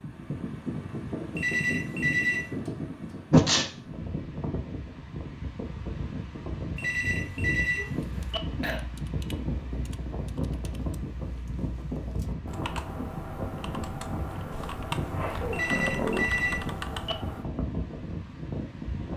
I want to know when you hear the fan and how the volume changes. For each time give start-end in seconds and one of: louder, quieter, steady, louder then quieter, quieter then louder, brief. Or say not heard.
0.0-19.1 steady.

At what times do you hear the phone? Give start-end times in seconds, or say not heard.
1.4-2.5, 6.8-8.4, 15.5-17.1.